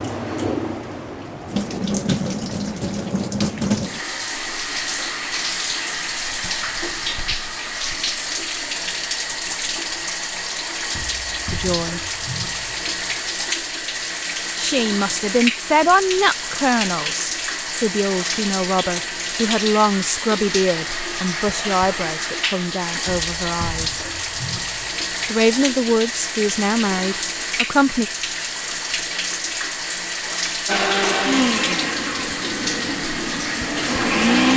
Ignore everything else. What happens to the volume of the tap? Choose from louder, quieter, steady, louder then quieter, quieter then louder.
steady.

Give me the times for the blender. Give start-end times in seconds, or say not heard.
30.6-34.5.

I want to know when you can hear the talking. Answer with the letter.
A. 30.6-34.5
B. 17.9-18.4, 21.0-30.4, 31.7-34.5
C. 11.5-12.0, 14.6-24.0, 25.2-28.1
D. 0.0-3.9
C.